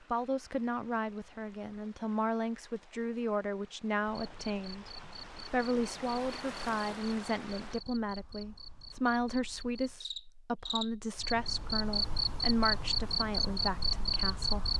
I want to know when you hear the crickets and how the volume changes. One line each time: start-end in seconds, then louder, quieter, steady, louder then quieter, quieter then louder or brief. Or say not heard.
4.1-14.7 louder.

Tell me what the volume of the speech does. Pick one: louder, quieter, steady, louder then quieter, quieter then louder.
steady.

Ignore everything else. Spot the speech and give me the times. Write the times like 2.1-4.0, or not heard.
0.1-4.9, 5.5-14.7.